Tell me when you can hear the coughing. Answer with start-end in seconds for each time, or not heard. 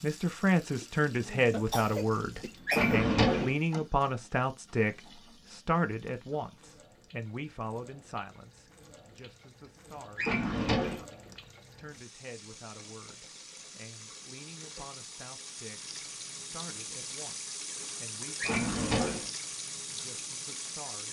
1.5-3.1.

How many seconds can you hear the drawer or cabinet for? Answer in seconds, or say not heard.
3 s.